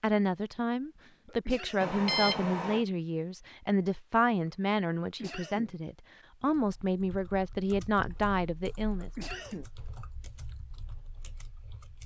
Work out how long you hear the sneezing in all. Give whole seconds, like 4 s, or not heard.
2 s.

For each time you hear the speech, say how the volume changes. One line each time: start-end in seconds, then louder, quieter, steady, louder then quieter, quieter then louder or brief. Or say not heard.
0.0-9.1 steady.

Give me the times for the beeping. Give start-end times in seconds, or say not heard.
1.8-2.9.